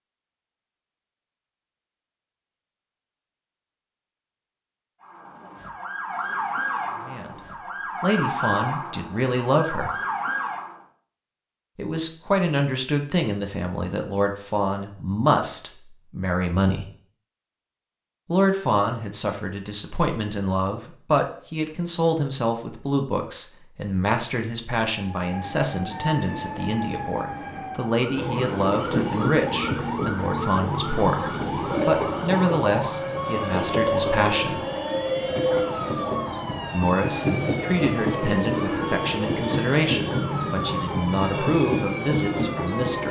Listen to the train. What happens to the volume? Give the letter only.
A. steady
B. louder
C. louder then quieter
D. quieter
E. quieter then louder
A.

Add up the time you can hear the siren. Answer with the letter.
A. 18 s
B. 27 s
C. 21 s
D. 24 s
D.